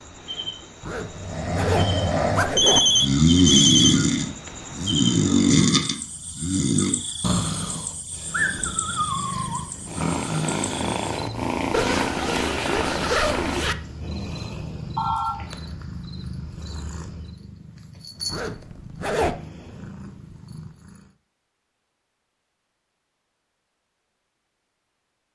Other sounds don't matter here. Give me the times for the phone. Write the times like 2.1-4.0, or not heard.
2.5-4.0, 14.9-15.4.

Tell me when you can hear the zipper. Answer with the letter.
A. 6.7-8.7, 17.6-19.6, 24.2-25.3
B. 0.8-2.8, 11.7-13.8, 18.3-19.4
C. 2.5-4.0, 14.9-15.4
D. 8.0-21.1
B.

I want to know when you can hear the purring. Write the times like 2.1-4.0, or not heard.
8.0-21.1.